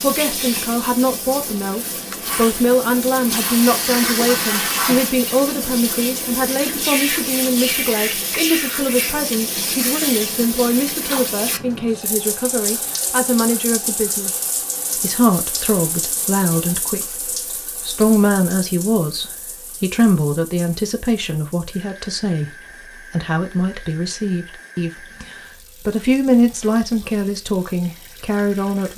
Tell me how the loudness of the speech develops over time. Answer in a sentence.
The volume of the speech stays about the same.